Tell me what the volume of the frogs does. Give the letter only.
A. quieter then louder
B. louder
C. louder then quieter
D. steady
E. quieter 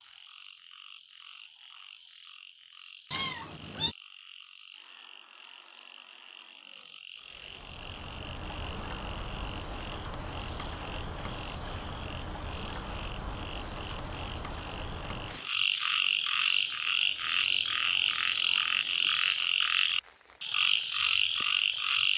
B.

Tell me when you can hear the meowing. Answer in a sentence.
You can hear the meowing from 3.1 to 4.0 s.